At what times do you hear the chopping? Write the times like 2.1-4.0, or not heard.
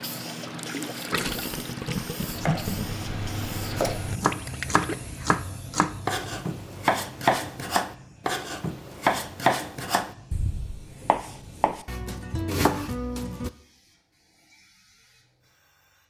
2.4-13.5.